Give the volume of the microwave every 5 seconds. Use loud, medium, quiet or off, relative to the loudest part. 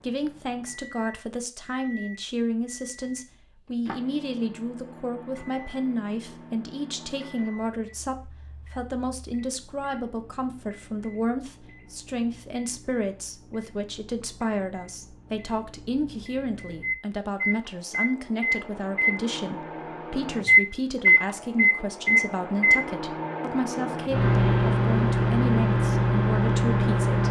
quiet, quiet, quiet, medium, loud, loud.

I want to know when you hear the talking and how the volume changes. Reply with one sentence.
The talking can be heard from 0.0 to 27.2 s, at a steady volume.